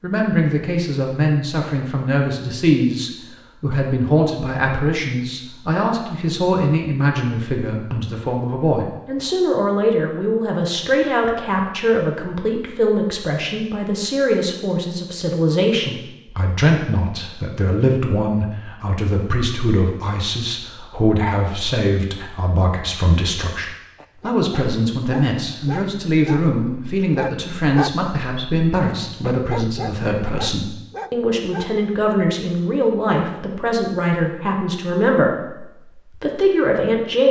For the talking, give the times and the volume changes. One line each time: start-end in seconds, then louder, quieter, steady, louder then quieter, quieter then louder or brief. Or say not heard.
0.0-37.2 steady.